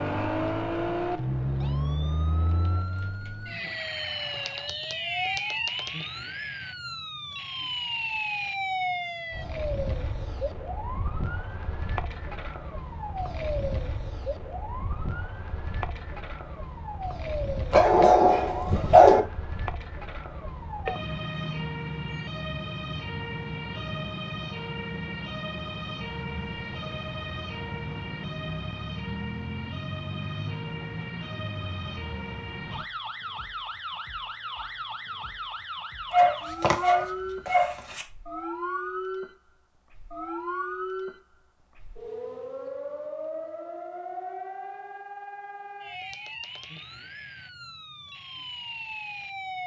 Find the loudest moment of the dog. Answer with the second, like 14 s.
19 s.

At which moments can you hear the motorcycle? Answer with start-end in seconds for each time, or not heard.
not heard.